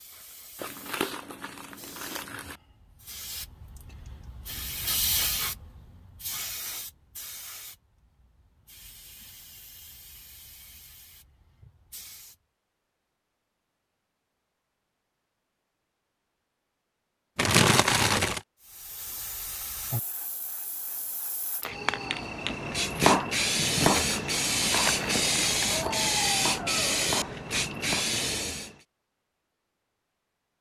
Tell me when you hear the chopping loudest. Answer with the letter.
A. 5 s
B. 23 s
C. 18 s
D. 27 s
B.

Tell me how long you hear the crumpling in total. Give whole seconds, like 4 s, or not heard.
5 s.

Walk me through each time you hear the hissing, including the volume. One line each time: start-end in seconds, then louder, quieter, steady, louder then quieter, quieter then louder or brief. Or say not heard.
0.0-12.3 louder then quieter
18.6-28.8 louder.